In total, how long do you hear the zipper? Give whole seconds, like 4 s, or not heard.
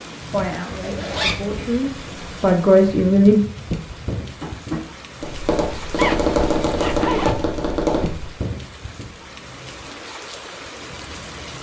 2 s.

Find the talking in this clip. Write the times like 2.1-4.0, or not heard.
0.3-3.4.